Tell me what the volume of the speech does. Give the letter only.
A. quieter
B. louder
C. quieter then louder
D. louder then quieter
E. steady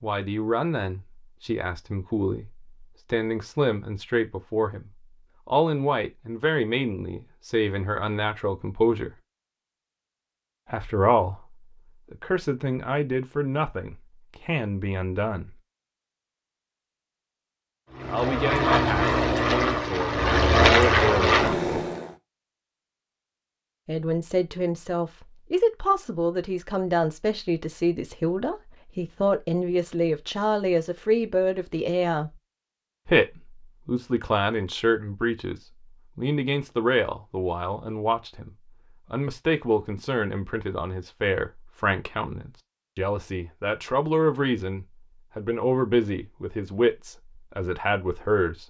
E.